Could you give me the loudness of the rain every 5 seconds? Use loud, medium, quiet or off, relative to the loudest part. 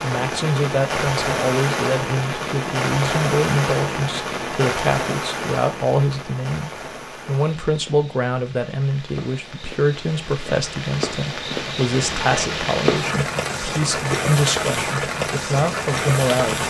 loud, medium, loud, loud.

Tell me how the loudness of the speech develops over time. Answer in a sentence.
The volume of the speech stays about the same.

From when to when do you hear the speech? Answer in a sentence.
The speech can be heard from 0.0 to 16.6 s.